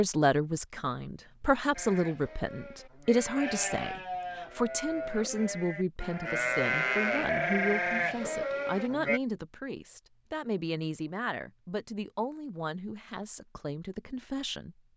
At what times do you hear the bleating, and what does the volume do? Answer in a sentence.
You can hear the bleating from 1.8 to 9.2 s, getting louder.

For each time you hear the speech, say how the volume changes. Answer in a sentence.
The speech can be heard from 0.0 to 14.8 s, getting quieter.